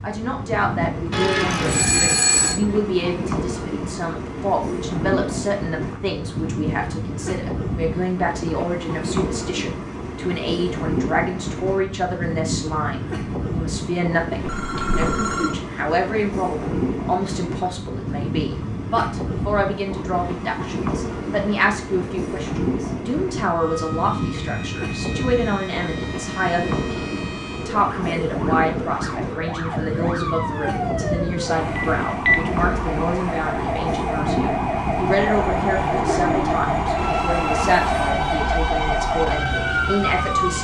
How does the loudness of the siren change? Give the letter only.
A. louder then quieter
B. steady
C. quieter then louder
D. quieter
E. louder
E.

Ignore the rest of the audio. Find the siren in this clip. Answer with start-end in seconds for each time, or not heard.
23.4-40.5.